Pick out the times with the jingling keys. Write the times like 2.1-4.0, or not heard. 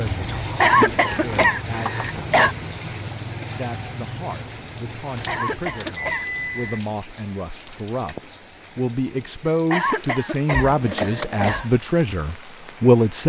0.2-2.2, 5.1-6.8, 10.5-11.7.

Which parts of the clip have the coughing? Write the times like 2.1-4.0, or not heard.
0.6-2.5, 5.2-6.8, 9.7-11.7.